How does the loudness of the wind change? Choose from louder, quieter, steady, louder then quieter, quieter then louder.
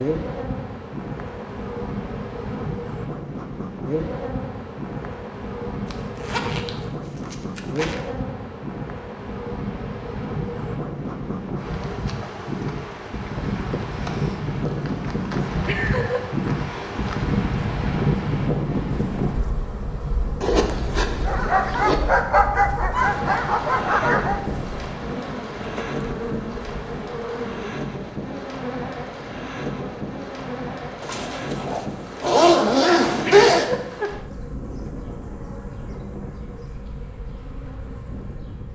louder then quieter.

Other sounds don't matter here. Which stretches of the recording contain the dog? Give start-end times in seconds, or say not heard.
21.2-24.4.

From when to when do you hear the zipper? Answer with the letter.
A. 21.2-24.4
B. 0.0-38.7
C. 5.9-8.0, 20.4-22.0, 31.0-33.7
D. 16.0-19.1
C.